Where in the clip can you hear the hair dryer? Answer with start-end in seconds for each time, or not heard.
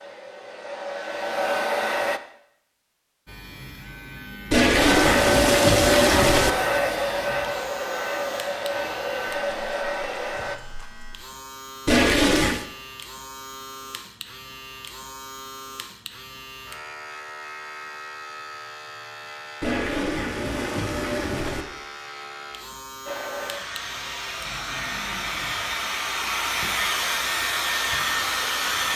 0.0-2.2, 4.8-10.6, 23.1-28.9.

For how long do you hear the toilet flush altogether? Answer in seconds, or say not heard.
5 s.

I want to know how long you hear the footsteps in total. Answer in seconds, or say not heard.
not heard.